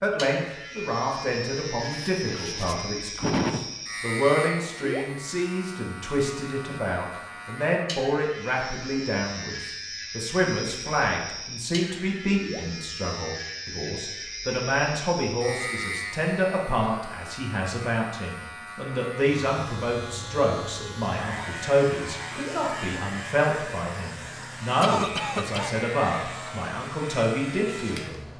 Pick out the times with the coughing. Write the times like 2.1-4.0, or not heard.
2.0-3.6, 24.8-25.8.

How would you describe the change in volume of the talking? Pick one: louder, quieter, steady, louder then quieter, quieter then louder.
steady.